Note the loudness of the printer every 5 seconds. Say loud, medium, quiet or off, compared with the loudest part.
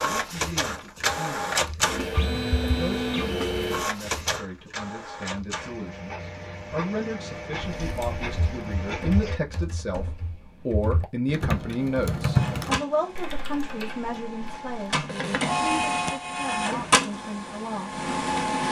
loud, medium, medium, loud.